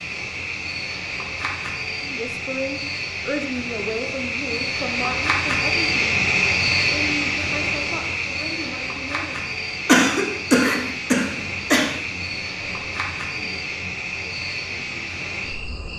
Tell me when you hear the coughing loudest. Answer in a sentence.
The loudest moment of the coughing is at 10 seconds.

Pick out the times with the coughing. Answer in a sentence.
The coughing can be heard from 9.8 to 11.8 s.